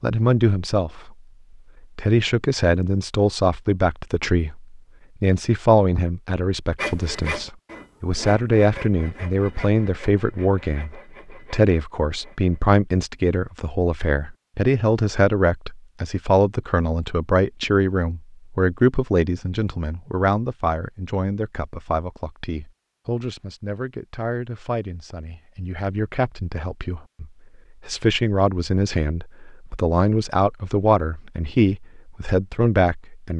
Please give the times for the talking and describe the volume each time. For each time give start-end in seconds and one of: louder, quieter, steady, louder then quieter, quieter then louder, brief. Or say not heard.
0.0-1.1 brief
1.9-33.3 quieter then louder.